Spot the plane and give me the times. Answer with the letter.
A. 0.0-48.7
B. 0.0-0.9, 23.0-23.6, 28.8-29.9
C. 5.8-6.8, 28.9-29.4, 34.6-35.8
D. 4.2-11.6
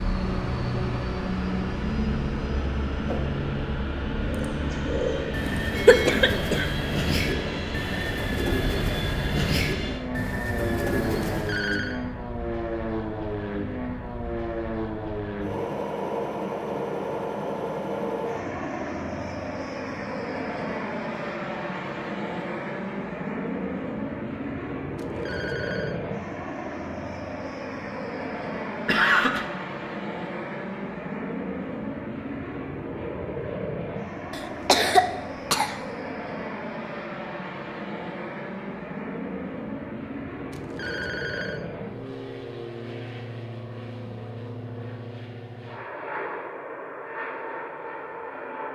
A.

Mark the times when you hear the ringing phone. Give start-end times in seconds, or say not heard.
11.3-12.0, 24.9-26.0, 40.5-41.6.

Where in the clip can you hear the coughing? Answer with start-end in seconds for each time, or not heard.
5.8-6.8, 28.9-29.4, 34.6-35.8.